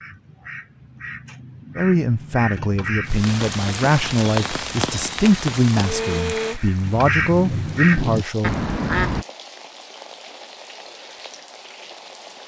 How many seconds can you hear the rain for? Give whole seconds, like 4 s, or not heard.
9 s.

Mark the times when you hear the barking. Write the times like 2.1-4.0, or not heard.
not heard.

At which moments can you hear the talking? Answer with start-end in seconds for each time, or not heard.
1.8-8.6.